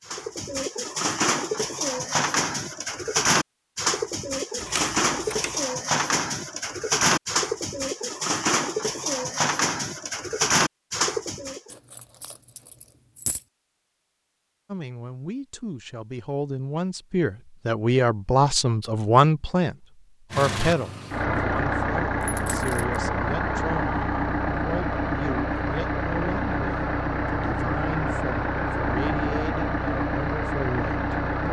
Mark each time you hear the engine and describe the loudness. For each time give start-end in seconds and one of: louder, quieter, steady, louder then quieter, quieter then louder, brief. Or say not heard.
20.3-31.4 steady.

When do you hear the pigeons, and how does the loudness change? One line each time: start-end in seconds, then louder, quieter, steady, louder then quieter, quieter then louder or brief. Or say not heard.
0.1-11.7 steady.